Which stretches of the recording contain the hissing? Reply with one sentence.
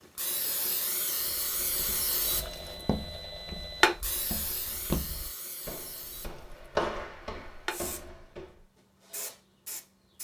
You can hear the hissing from 0.1 to 2.9 s, from 3.8 to 6.7 s and from 7.7 to 10.2 s.